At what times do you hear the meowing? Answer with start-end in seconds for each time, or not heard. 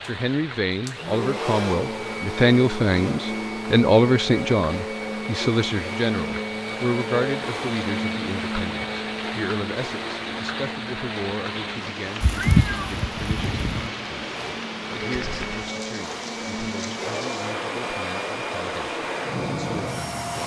12.2-13.9.